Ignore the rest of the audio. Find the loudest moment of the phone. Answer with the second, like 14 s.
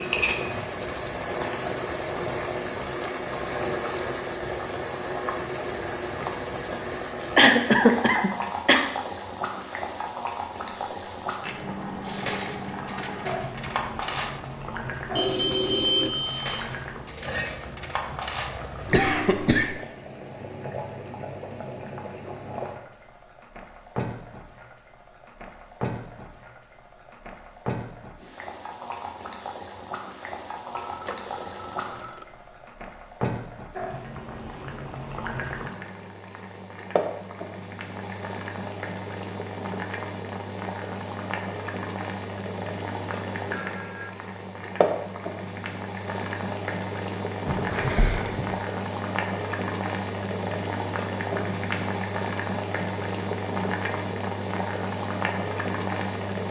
16 s.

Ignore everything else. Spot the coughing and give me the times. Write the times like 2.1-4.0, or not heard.
7.3-8.8, 18.9-19.8, 47.5-48.5.